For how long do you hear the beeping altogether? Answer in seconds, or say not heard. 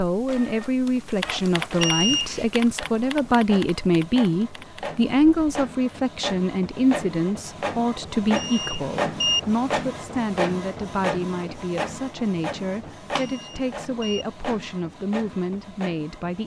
3 s.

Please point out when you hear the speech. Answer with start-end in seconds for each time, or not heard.
0.0-16.4.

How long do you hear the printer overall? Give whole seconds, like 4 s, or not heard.
16 s.